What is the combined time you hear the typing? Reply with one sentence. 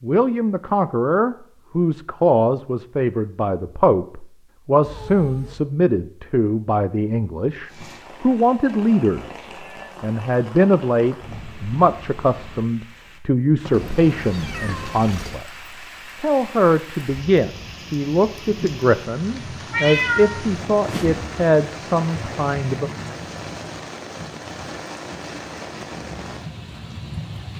You can't hear the typing here.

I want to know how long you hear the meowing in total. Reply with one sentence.
The meowing can be heard for 4 seconds in total.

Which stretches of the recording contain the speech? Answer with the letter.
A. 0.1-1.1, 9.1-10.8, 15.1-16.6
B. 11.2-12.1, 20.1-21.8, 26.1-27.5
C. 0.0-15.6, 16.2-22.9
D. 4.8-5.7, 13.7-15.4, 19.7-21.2
C.